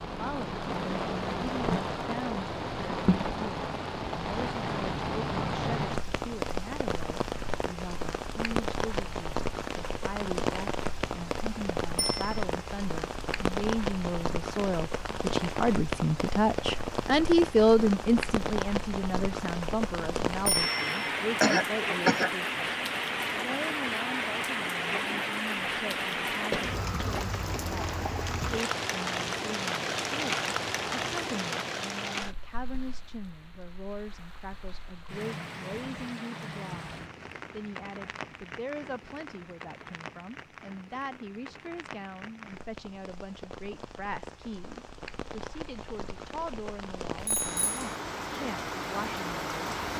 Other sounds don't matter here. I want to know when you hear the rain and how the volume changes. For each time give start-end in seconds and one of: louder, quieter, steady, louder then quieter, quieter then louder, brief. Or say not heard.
0.0-49.9 quieter.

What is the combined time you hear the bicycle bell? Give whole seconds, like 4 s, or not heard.
2 s.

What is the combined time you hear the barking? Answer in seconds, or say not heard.
not heard.